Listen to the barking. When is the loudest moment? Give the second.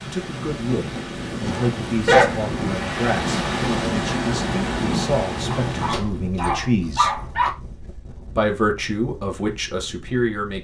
2 s.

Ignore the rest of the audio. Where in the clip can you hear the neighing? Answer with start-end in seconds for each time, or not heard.
not heard.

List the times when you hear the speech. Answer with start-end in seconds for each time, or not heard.
0.0-7.1, 8.2-10.5.